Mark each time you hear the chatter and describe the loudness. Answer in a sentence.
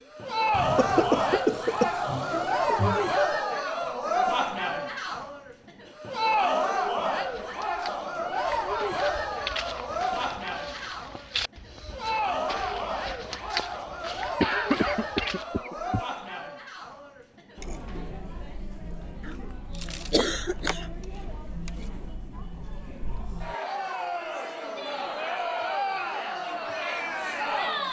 You can hear the chatter from 0.1 to 27.8 s, getting quieter then louder.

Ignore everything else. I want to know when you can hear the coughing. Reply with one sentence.
The coughing can be heard from 0.5 to 3.1 s, from 14.4 to 16.1 s and from 19.2 to 20.9 s.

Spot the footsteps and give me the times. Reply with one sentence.
The footsteps can be heard from 7.2 to 15.6 s.